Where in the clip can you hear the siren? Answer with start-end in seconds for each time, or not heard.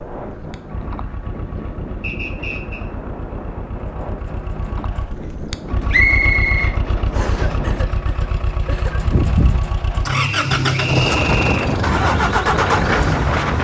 not heard.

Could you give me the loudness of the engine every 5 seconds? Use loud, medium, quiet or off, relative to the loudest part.
quiet, medium, loud.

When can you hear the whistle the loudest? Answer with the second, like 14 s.
6 s.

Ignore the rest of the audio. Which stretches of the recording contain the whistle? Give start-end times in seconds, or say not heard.
2.0-2.9, 5.9-7.5, 10.1-11.8.